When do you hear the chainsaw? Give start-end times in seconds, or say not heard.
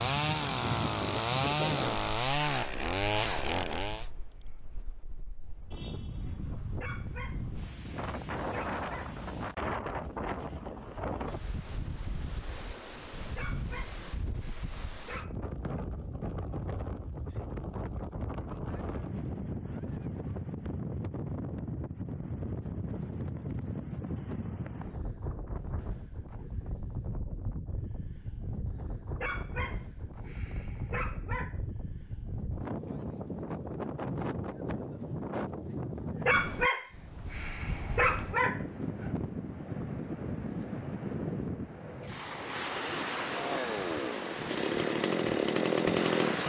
0.0-4.1, 43.3-46.4.